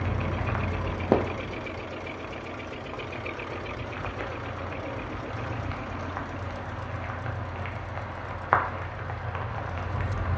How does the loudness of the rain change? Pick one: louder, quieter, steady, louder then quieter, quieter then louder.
quieter then louder.